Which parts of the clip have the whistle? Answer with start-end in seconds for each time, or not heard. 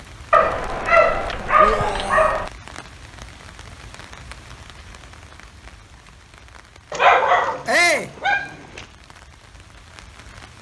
not heard.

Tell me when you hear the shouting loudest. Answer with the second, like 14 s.
8 s.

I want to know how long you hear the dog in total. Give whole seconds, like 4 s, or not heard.
4 s.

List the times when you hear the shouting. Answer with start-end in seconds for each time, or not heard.
1.6-2.4, 7.7-8.1.